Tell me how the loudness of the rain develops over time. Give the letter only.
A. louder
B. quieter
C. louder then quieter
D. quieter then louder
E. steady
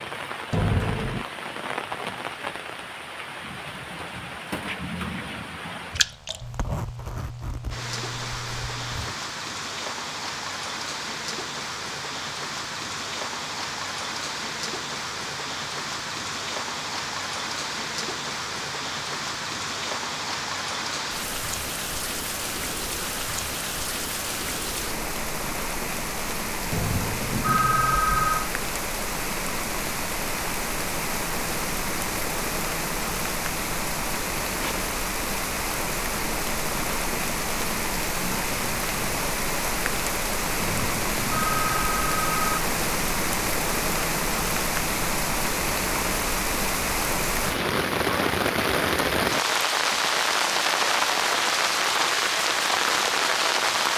A.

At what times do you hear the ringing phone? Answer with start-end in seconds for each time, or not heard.
0.5-1.2, 26.7-28.5, 40.5-42.6.